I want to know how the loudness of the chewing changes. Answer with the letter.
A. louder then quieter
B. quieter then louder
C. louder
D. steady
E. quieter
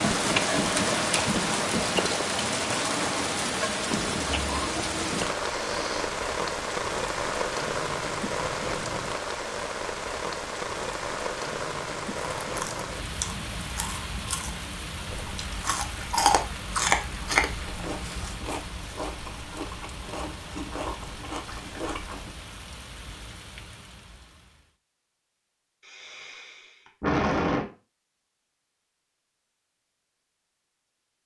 A.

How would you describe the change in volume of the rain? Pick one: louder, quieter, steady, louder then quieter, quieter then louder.
quieter.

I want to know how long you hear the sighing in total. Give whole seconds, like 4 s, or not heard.
2 s.